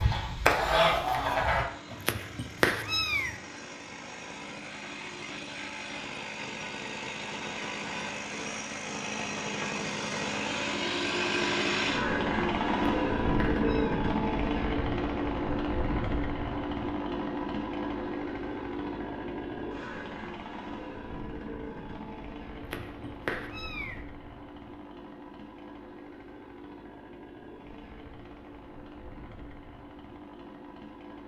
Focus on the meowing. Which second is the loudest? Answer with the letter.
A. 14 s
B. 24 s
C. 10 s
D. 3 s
D.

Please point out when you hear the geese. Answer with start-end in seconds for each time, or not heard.
0.0-1.6.